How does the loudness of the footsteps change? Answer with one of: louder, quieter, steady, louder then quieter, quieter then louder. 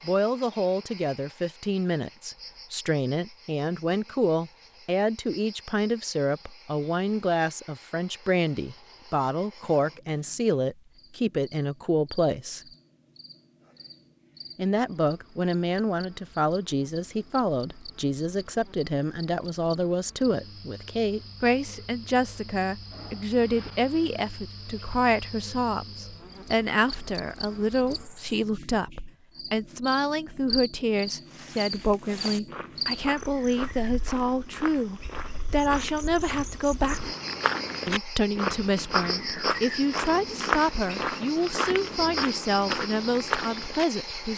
louder.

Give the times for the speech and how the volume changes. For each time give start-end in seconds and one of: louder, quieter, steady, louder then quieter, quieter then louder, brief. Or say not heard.
0.1-12.6 steady
14.6-37.1 steady
37.9-44.3 steady.